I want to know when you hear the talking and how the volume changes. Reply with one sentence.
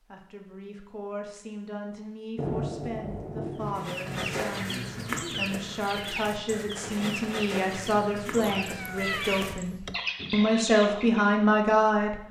The talking can be heard from 0.1 to 12.2 s, getting louder.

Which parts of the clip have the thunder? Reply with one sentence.
You can hear the thunder from 2.4 to 4.4 s.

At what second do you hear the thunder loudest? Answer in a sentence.
The loudest moment of the thunder is at 3 seconds.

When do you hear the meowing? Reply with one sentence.
You can hear the meowing from 8.3 to 10.0 s.